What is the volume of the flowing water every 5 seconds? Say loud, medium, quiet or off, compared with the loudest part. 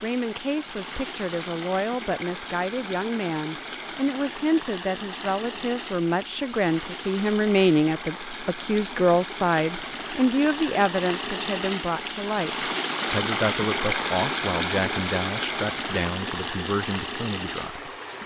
medium, medium, loud, loud.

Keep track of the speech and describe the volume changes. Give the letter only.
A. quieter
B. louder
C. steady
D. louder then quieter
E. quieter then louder
D.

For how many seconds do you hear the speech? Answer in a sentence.
The speech can be heard for 18 seconds in total.